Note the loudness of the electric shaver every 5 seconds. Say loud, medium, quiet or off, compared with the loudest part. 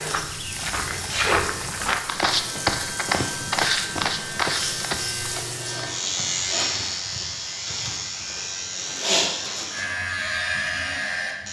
medium, loud, loud.